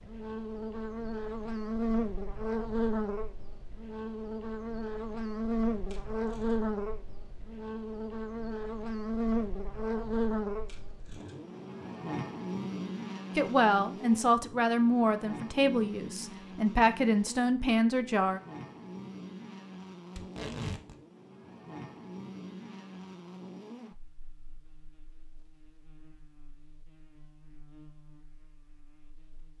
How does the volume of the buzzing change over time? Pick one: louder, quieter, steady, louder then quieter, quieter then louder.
quieter.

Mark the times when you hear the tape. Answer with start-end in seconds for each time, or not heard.
5.9-6.5, 10.7-11.3, 20.1-20.9.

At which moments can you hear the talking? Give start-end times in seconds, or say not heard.
13.3-18.4.